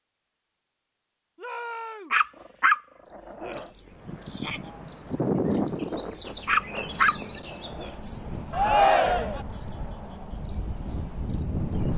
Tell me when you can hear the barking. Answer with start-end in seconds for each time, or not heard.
2.1-3.6, 6.5-8.0.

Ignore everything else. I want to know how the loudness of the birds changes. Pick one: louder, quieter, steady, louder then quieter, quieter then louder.
louder then quieter.